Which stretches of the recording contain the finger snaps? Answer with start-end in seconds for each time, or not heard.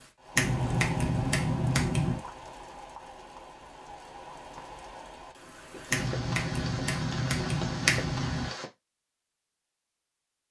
0.3-2.2, 5.9-8.5.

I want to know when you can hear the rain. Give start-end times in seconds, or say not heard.
0.0-8.7.